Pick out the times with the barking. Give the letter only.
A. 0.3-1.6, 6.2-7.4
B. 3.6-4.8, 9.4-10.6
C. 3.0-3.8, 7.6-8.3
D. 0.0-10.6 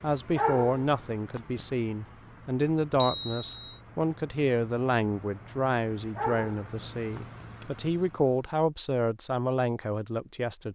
A.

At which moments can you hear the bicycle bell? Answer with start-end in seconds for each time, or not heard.
3.0-3.8, 7.6-8.3.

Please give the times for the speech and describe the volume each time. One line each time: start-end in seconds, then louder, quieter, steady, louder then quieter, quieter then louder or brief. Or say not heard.
0.0-10.6 steady.